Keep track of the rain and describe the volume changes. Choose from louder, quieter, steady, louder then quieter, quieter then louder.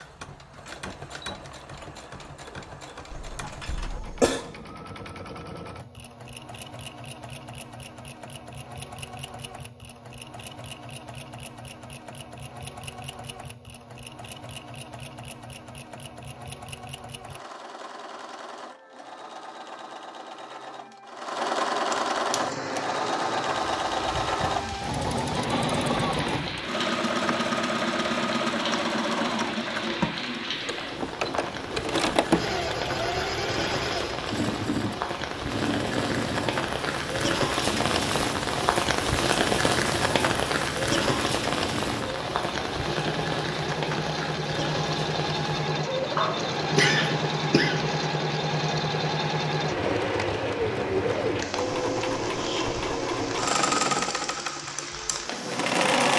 louder then quieter.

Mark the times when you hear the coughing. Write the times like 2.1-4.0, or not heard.
3.1-4.5, 21.9-22.8, 46.1-47.9.